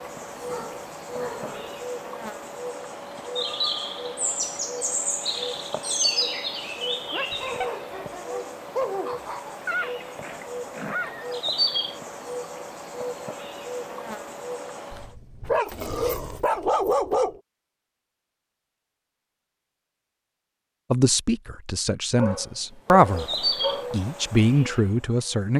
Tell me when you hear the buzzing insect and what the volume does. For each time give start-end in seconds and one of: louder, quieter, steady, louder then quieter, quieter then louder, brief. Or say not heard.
0.0-15.1 louder then quieter
22.9-25.5 brief.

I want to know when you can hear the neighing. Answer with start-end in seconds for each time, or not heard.
9.7-11.3.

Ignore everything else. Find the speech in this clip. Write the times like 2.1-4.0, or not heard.
20.9-23.2, 23.9-25.5.